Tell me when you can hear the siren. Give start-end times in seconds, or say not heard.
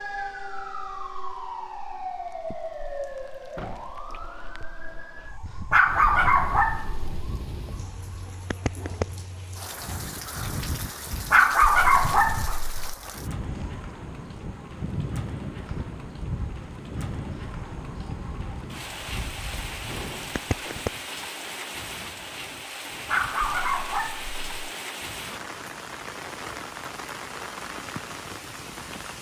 0.0-21.1.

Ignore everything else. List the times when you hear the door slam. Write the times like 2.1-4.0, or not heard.
3.5-4.0, 19.8-20.9.